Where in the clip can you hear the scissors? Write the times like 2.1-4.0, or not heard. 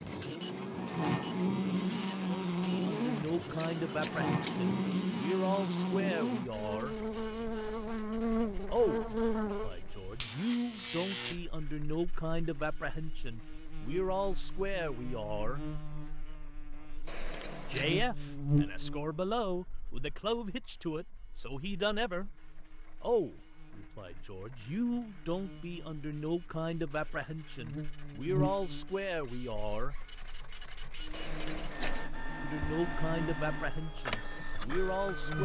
2.9-4.7, 17.1-18.1, 31.1-32.1.